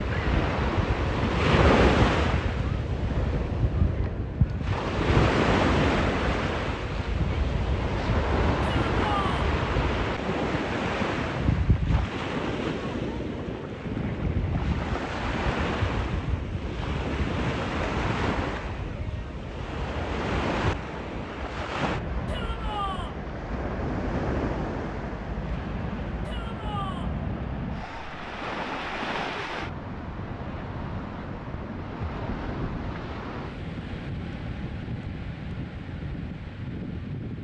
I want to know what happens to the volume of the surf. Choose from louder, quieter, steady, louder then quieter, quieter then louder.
quieter.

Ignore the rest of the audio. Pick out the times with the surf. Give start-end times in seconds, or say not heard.
0.0-37.3.